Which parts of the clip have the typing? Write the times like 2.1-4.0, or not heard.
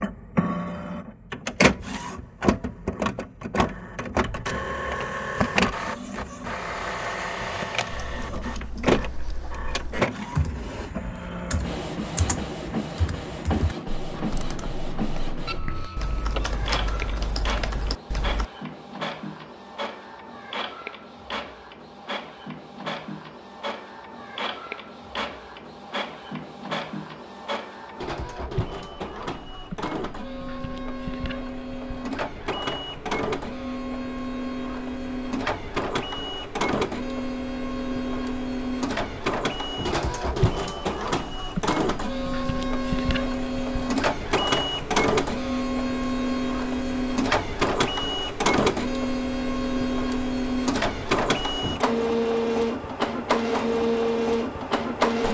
7.9-18.4.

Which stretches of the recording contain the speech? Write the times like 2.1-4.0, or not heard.
not heard.